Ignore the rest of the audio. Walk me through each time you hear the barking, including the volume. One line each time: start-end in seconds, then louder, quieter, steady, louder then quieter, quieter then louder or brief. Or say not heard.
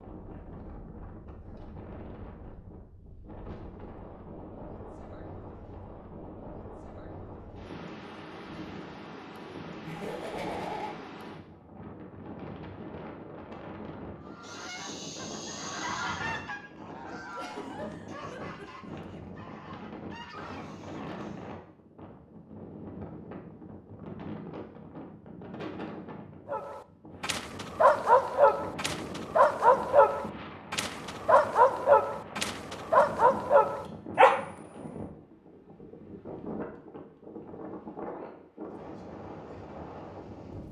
26.5-34.5 steady.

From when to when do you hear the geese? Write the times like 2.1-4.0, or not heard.
14.2-21.6.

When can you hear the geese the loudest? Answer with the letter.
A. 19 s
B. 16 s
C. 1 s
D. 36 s
B.